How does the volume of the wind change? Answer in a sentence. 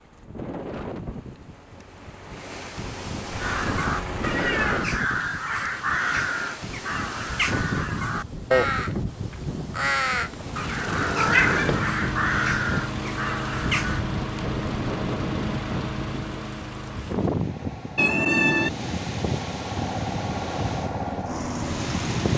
The loudness of the wind stays about the same.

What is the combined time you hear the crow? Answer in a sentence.
You can hear the crow for 11 seconds altogether.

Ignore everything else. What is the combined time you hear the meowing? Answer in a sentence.
You can hear the meowing for 3 seconds altogether.